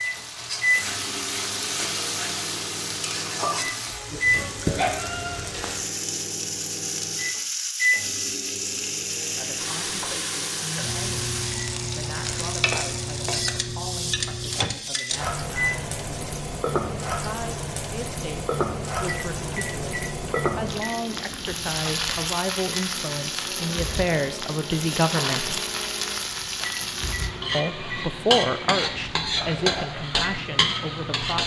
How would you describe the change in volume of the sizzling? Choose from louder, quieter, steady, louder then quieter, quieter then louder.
steady.